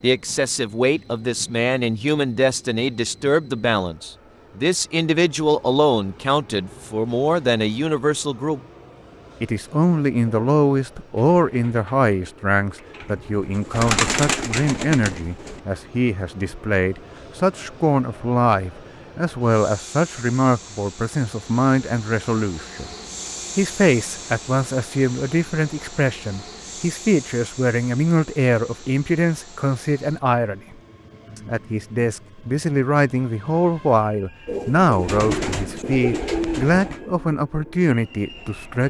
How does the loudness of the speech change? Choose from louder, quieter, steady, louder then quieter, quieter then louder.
steady.